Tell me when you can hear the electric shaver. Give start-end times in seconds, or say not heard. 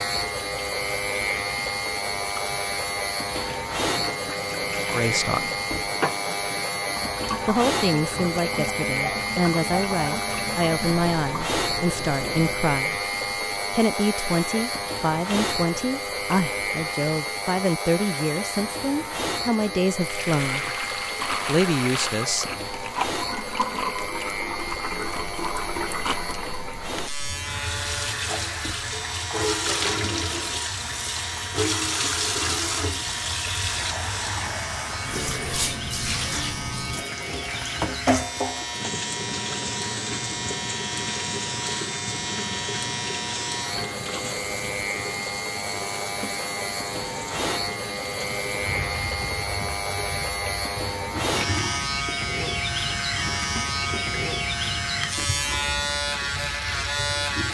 0.0-57.4.